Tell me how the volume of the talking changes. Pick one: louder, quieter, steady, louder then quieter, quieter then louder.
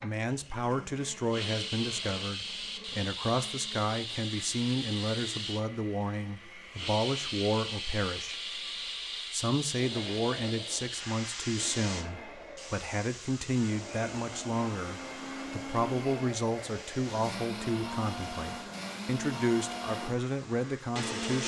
steady.